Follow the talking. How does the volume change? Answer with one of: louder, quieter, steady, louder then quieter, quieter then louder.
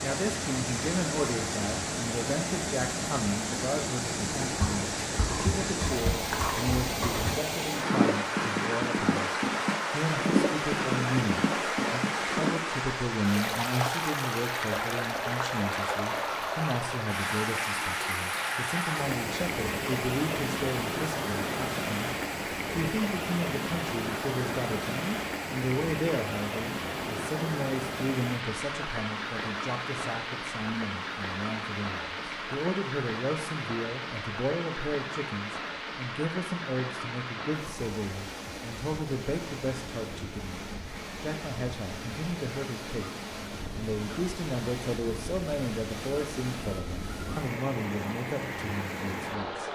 steady.